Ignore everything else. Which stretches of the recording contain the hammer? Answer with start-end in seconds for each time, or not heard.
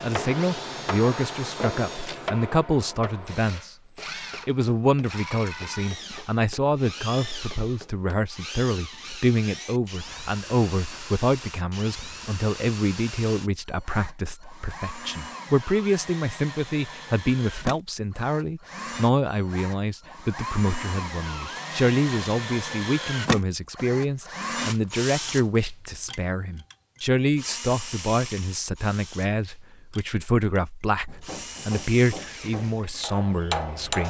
0.0-8.1, 31.1-34.0.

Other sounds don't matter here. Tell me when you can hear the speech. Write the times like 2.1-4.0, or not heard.
0.0-3.8, 4.5-34.0.